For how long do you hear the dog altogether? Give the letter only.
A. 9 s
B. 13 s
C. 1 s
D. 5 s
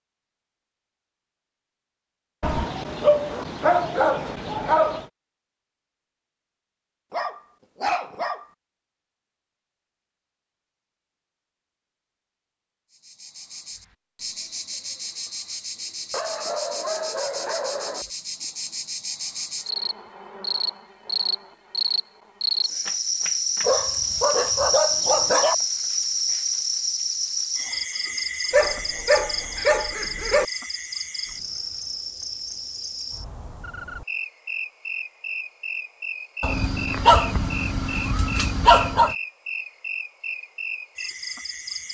B.